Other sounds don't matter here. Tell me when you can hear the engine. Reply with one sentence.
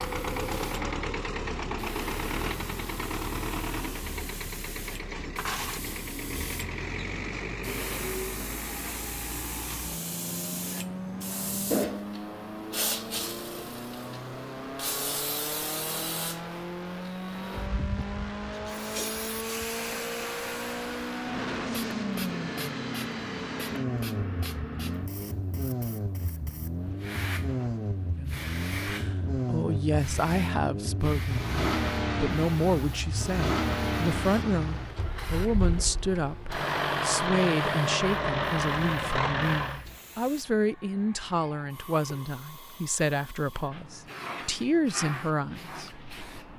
You can hear the engine from 0.0 to 39.9 s.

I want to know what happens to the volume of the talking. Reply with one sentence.
The volume of the talking stays about the same.